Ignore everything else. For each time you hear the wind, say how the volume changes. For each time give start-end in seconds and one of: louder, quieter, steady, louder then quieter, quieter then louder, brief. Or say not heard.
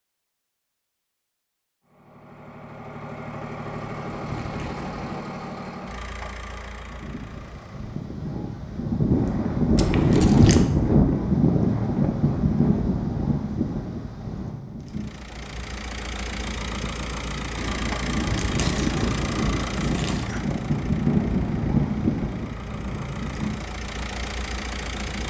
6.9-25.2 quieter then louder.